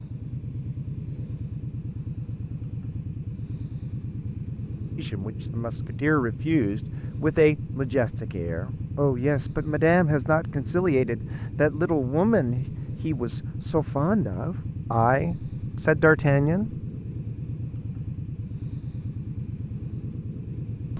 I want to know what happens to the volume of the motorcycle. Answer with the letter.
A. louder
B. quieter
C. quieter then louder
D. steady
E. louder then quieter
D.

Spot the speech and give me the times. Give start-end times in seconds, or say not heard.
5.0-16.8.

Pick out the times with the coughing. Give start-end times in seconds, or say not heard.
not heard.